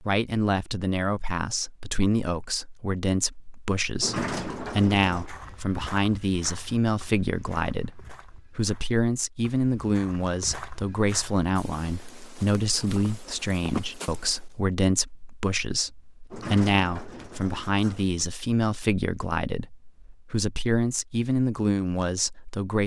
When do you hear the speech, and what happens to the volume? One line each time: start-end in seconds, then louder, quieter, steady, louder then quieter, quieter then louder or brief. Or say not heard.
0.0-22.8 steady.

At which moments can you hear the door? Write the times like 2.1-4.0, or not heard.
4.0-5.3, 16.3-18.1.